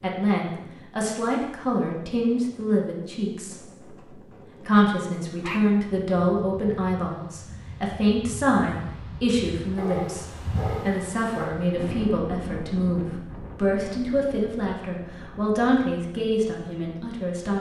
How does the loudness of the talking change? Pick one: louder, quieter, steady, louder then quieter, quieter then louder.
steady.